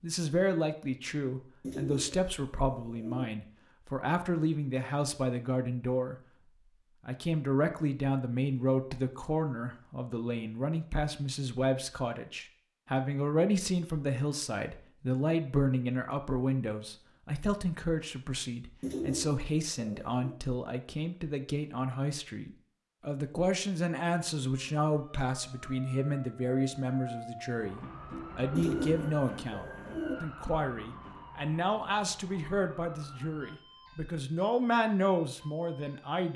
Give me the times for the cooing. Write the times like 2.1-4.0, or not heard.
1.6-3.2, 18.8-20.4, 28.6-30.1.